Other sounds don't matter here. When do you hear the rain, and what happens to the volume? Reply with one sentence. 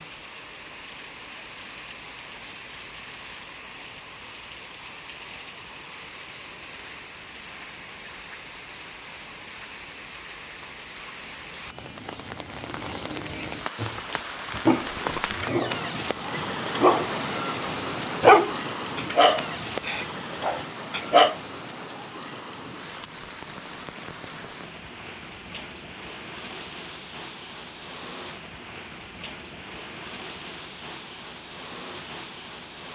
The rain can be heard from 0.0 to 32.8 s, getting louder then quieter.